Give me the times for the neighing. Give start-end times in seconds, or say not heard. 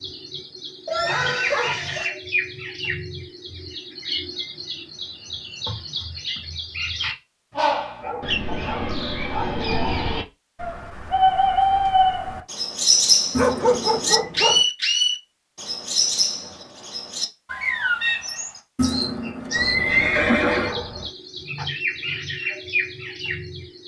0.9-2.1, 13.3-14.3, 18.8-20.8.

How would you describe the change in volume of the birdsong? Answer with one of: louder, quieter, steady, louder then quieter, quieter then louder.
louder then quieter.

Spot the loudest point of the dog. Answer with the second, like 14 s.
14 s.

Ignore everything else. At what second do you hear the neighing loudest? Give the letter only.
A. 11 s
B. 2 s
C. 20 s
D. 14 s
C.